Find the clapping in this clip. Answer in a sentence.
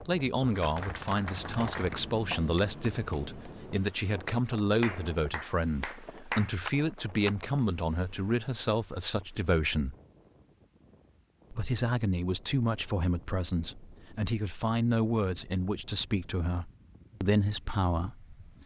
The clapping can be heard from 0.5 to 7.3 s.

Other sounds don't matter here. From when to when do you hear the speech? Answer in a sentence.
You can hear the speech from 0.0 to 9.9 s and from 11.5 to 18.4 s.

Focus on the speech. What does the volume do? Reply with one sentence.
The loudness of the speech stays about the same.